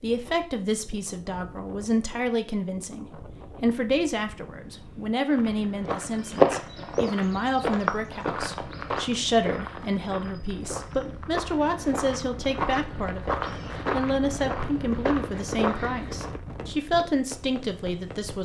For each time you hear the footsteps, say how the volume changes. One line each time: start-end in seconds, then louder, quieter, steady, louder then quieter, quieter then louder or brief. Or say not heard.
5.3-16.4 quieter then louder.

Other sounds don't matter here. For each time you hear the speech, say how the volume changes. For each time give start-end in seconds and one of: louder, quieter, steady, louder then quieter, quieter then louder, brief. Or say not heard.
0.0-18.4 steady.